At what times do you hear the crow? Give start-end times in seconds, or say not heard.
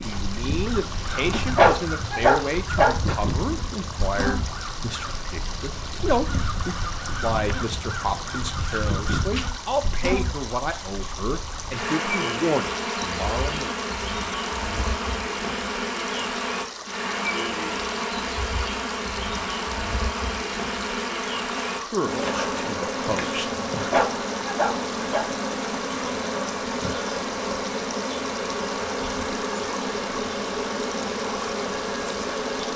0.5-9.6.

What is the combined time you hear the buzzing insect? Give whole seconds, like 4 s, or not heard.
33 s.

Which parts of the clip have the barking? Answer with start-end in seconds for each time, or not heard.
1.2-3.0, 23.4-25.2.